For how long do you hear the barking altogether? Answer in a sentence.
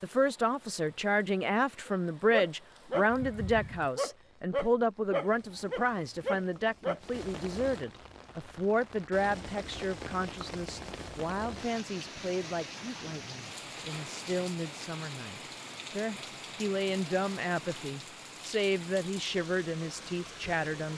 The barking can be heard for 5 seconds in total.